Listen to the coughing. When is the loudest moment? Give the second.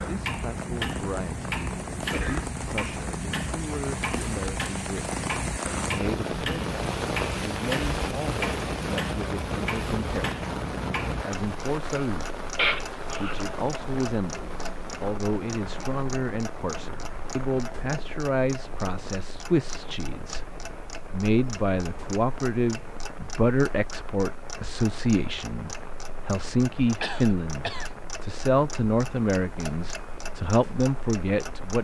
13 s.